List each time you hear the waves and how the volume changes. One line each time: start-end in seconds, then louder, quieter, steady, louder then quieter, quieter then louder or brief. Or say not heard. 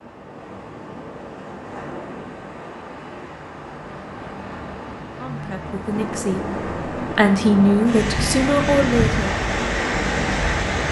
0.0-10.8 louder.